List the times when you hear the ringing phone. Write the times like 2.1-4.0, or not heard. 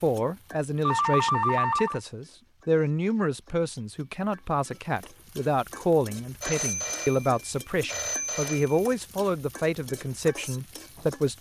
0.8-2.0, 6.4-8.8.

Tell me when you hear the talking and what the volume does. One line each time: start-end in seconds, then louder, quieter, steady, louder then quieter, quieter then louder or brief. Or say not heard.
0.0-11.3 steady.